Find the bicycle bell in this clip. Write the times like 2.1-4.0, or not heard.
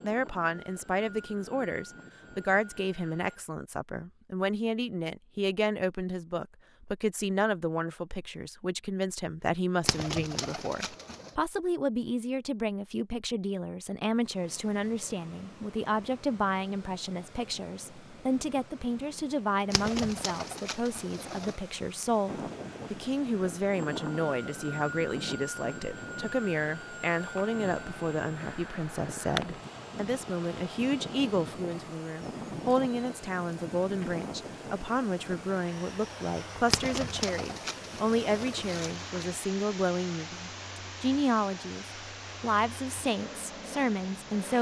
not heard.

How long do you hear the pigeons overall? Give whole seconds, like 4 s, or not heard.
6 s.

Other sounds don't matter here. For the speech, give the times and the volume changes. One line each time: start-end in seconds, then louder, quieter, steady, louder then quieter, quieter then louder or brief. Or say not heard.
0.0-44.5 steady.